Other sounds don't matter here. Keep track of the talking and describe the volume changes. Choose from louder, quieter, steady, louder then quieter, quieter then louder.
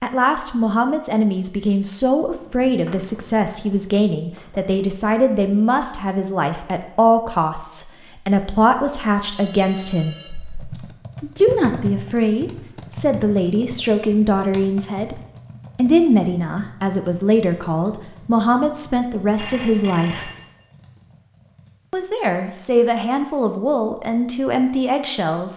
steady.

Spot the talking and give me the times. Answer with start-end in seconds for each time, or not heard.
0.0-10.2, 11.2-20.3, 21.9-25.5.